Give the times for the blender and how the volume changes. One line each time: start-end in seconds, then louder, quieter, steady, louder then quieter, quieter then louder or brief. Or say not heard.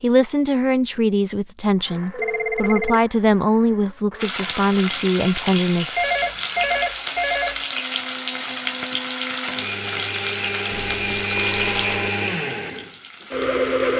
1.8-13.9 louder.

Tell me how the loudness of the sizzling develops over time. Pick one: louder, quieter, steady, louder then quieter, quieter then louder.
quieter.